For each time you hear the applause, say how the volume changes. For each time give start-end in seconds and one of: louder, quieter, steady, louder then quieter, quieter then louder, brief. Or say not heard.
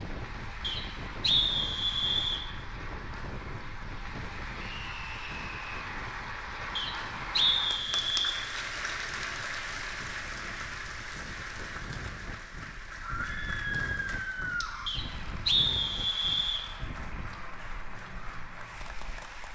0.0-19.5 louder then quieter.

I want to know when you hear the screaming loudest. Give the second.
14 s.